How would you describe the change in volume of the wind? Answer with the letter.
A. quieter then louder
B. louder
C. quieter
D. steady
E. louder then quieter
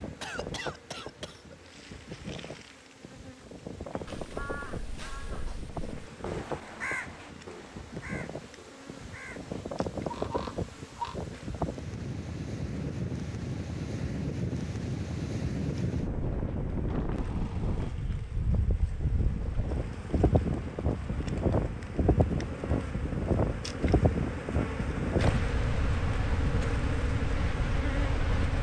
B.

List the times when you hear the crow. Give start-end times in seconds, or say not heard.
3.8-11.2.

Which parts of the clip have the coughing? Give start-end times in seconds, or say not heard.
0.2-1.6.